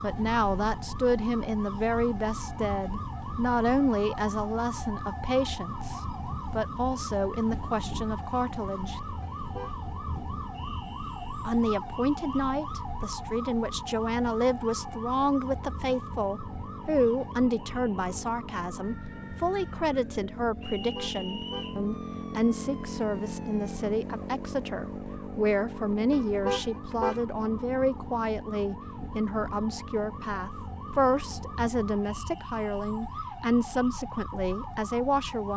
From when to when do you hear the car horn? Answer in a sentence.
You can hear the car horn from 9.2 to 9.8 s, from 20.8 to 21.8 s and from 26.1 to 27.2 s.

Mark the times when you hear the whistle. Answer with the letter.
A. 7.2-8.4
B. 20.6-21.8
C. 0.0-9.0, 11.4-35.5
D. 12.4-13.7
B.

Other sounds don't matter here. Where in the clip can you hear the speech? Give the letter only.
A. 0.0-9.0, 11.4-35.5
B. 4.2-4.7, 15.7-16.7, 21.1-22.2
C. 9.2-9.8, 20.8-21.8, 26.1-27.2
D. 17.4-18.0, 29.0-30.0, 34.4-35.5
A.